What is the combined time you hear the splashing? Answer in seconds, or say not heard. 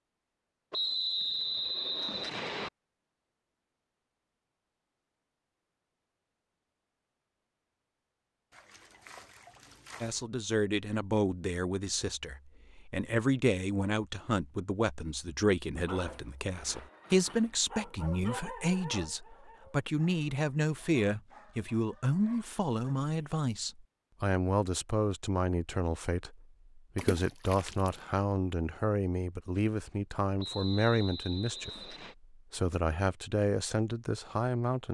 3 s.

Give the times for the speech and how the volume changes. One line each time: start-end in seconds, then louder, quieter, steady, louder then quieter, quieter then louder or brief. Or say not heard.
10.0-34.8 steady.